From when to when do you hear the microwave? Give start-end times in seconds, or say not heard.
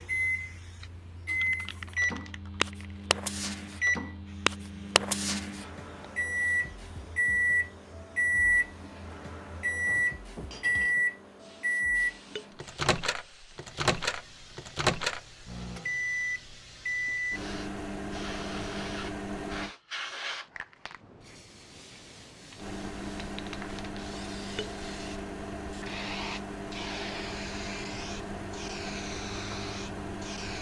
0.0-19.7, 22.6-30.5.